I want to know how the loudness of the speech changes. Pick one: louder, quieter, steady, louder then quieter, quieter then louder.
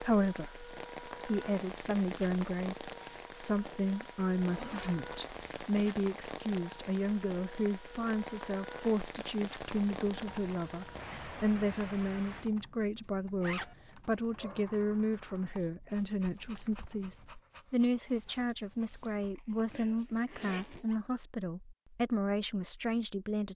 steady.